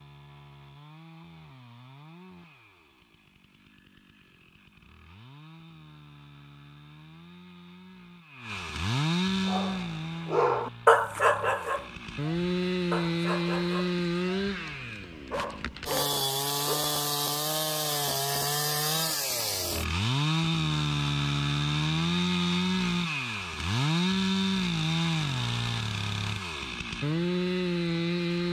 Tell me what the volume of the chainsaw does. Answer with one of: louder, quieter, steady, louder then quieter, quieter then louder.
louder.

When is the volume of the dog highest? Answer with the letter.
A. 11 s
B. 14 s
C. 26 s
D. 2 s
A.